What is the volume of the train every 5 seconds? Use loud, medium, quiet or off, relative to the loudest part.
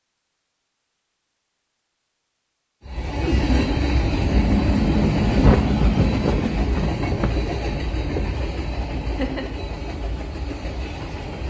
loud, loud, medium.